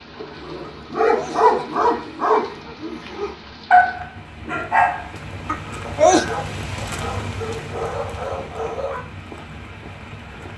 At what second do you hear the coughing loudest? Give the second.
6 s.